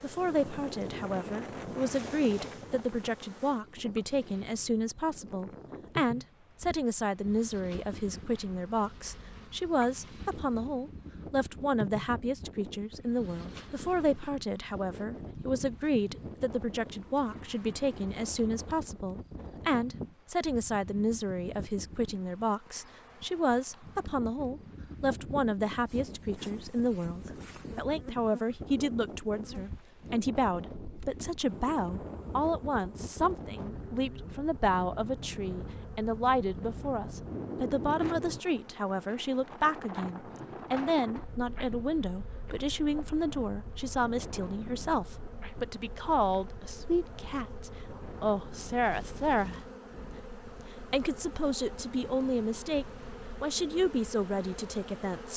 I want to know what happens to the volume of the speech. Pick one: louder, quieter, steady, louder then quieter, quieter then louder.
steady.